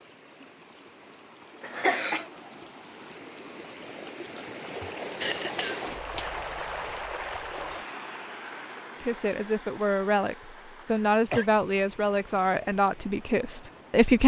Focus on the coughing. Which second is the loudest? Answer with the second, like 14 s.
2 s.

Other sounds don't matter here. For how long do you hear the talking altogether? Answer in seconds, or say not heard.
5 s.